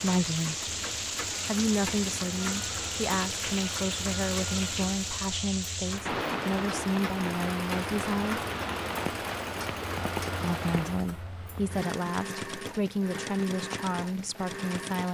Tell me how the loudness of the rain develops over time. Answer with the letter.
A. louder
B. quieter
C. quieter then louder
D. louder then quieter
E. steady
B.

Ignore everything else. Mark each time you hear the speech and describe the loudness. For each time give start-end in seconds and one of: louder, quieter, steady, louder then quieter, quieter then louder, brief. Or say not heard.
0.0-0.8 brief
1.4-8.4 steady
10.4-15.0 steady.